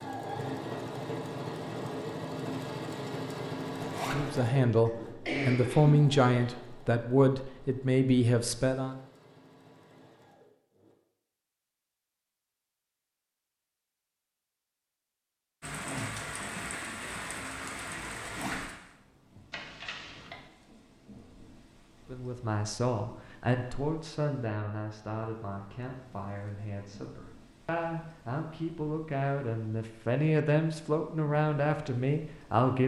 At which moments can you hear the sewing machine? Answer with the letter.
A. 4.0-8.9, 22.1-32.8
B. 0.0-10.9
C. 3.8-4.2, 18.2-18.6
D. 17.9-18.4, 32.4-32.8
B.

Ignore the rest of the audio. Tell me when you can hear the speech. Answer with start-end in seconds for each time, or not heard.
4.0-8.9, 22.1-32.8.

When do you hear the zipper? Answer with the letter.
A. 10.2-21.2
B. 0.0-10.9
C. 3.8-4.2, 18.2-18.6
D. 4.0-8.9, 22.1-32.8
C.